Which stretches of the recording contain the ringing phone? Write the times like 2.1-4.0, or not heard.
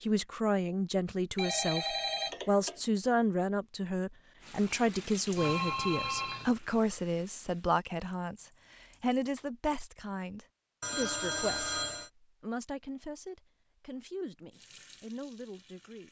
1.4-2.8, 5.3-6.5, 10.8-12.1.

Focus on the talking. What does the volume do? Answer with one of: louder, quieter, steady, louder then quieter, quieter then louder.
quieter.